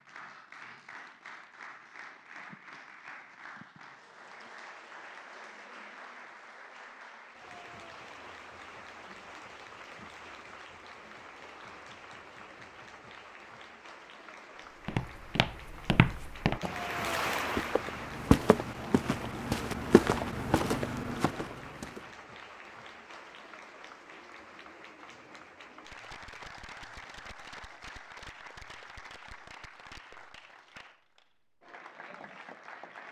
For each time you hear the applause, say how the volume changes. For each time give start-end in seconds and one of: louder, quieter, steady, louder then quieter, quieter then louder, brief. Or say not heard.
0.0-33.0 louder then quieter.